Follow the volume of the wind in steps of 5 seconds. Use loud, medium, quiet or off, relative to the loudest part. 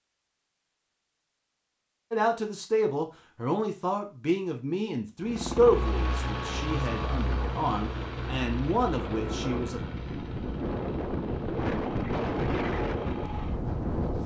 off, medium, loud.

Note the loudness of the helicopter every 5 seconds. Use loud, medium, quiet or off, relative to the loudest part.
off, loud, medium.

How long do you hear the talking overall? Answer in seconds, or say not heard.
8 s.